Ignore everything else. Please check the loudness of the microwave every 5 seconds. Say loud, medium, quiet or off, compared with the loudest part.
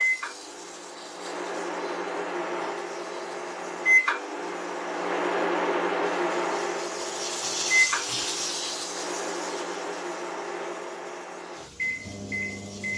loud, loud, medium.